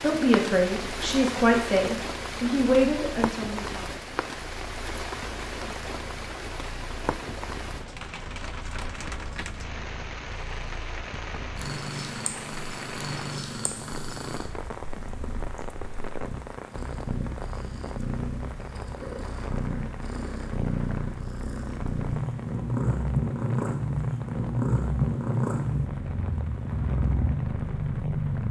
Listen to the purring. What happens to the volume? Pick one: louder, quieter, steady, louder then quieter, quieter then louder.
louder.